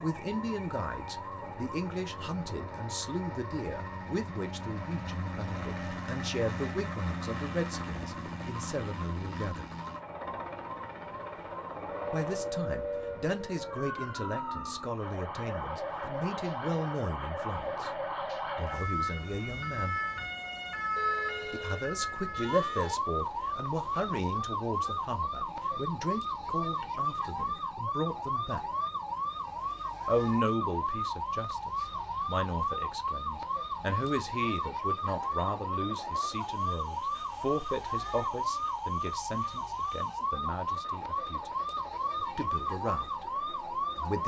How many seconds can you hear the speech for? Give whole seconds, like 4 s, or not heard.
38 s.